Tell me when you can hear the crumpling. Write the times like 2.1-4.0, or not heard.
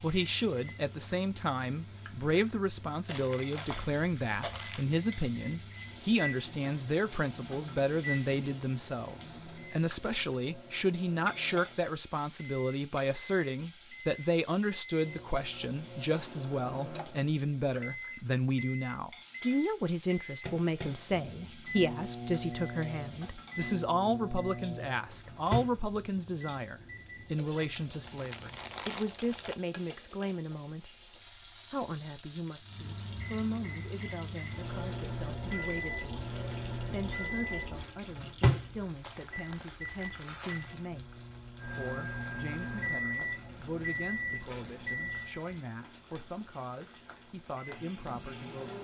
3.0-4.8, 27.9-29.6, 39.0-40.8.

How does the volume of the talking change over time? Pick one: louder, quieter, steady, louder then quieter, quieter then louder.
quieter.